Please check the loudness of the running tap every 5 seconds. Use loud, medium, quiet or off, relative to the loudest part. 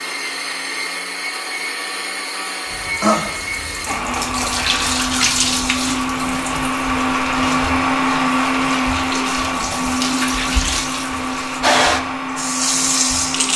loud, medium, loud.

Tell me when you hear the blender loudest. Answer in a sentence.
The volume of the blender peaks at 8 seconds.